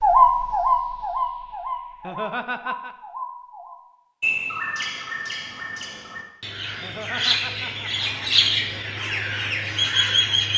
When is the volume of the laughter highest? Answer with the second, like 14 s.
2 s.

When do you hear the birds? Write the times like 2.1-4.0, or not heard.
0.0-10.5.